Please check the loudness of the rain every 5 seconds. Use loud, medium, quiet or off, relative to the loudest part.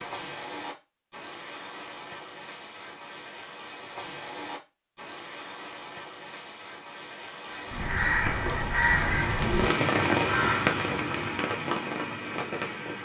medium, loud, loud.